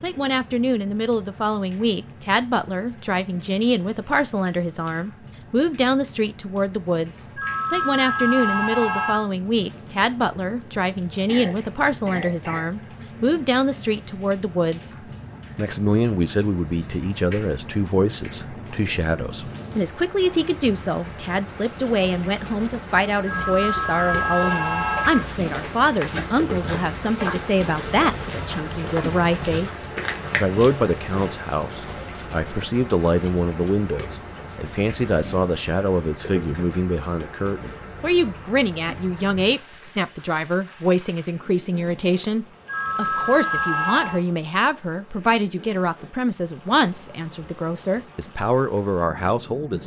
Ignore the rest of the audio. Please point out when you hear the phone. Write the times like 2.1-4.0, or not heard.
7.3-9.2, 23.2-25.2, 42.6-44.2.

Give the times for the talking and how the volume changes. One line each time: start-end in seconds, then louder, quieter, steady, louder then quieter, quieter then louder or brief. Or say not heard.
0.0-14.9 steady
15.6-49.8 steady.